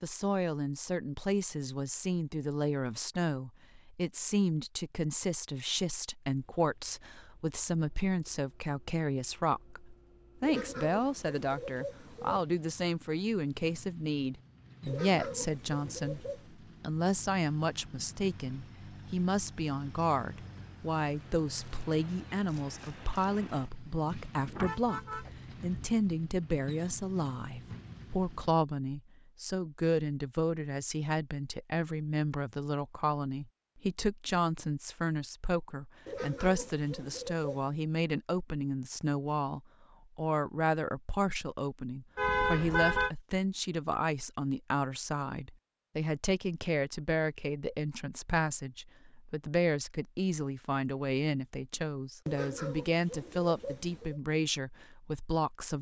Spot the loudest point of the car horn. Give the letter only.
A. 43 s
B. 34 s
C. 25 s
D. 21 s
A.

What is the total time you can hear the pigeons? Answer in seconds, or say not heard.
7 s.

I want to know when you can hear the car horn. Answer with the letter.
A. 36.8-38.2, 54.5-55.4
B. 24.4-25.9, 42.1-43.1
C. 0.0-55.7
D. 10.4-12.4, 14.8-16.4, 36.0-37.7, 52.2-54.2
B.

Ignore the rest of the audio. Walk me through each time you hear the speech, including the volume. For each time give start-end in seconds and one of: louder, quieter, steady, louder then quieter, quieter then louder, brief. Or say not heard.
0.0-55.7 steady.